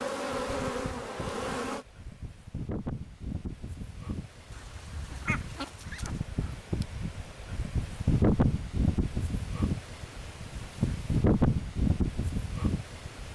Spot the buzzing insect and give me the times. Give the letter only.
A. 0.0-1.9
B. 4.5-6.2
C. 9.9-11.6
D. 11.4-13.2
A.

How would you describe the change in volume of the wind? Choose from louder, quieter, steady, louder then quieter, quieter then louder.
louder.